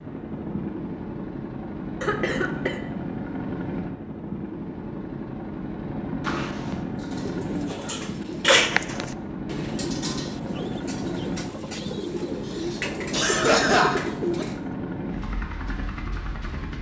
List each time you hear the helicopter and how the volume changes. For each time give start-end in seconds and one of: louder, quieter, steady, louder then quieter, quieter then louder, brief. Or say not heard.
0.0-16.7 steady.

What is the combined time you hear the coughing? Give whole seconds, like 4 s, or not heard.
3 s.